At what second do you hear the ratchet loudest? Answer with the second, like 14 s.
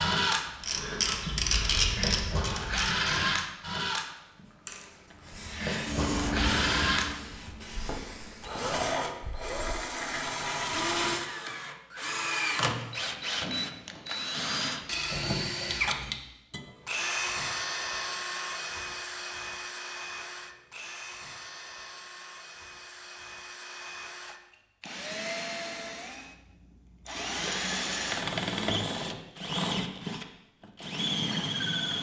2 s.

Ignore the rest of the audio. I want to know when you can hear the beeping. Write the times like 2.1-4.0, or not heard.
15.7-16.2.